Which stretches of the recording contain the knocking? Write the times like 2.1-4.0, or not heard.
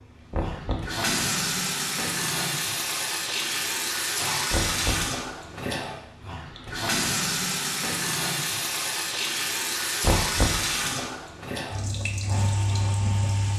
0.3-0.9, 4.5-5.2, 10.0-10.7.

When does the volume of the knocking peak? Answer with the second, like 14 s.
10 s.